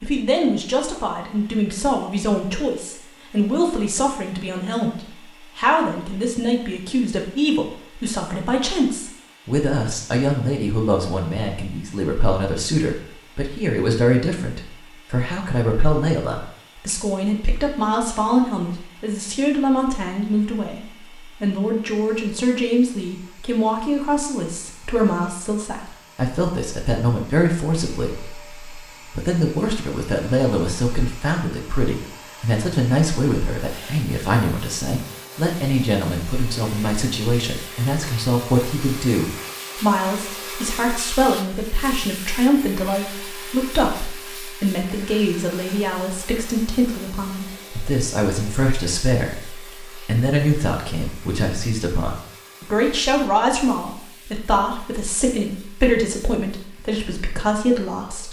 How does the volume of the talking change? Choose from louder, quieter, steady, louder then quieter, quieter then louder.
steady.